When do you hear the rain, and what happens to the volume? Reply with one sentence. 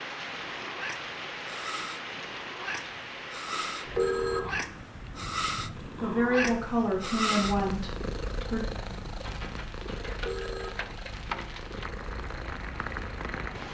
The rain can be heard from 0.0 to 13.6 s, getting quieter then louder.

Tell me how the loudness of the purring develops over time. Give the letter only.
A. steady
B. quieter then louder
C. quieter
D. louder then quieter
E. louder
D.